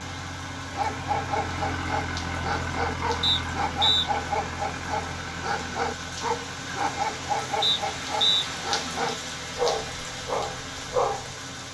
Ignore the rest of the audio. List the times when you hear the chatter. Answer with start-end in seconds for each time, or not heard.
not heard.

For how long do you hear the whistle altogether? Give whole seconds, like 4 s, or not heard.
2 s.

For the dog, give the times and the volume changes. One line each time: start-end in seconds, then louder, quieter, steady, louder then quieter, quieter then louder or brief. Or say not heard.
0.7-11.3 steady.